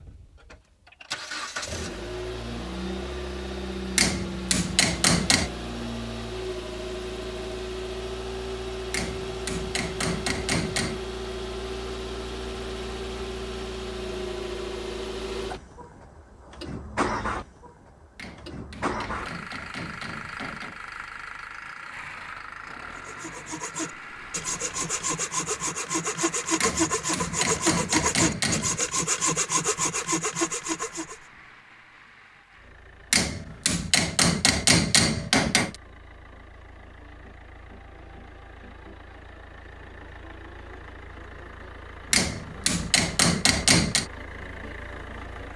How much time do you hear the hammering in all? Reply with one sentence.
The hammering can be heard for 13 seconds in total.